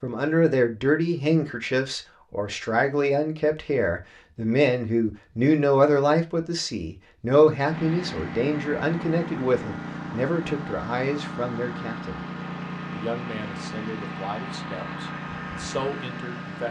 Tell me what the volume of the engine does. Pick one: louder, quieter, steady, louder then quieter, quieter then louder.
steady.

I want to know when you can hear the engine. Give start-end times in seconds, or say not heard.
7.7-16.6.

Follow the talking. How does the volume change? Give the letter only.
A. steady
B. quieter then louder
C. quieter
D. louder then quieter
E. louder
C.